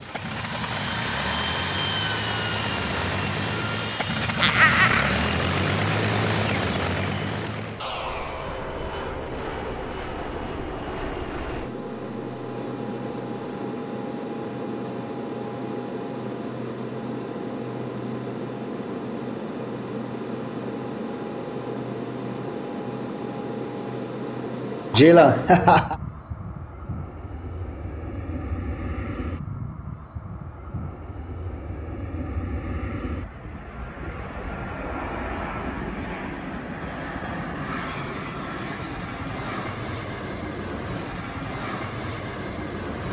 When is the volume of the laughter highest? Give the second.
25 s.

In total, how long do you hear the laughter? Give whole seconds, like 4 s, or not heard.
2 s.